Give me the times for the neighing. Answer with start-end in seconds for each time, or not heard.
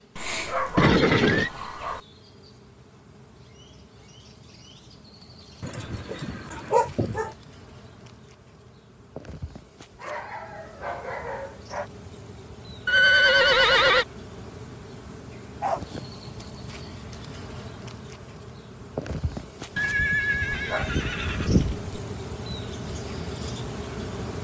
0.8-1.5, 12.8-14.1, 19.8-21.8.